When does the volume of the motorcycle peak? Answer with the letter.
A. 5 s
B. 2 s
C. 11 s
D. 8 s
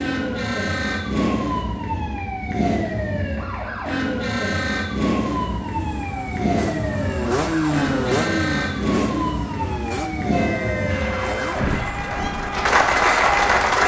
D.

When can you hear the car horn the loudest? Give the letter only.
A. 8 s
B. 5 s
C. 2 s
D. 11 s
D.